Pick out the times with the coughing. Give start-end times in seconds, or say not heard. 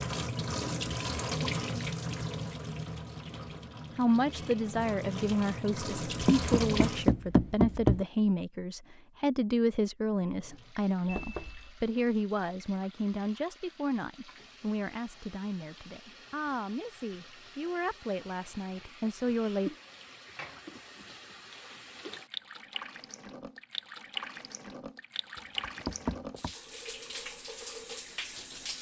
not heard.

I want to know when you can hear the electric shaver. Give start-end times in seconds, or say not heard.
not heard.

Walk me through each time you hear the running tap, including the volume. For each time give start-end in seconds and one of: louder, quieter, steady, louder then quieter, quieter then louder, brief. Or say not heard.
0.0-7.1 quieter then louder
10.2-28.7 louder.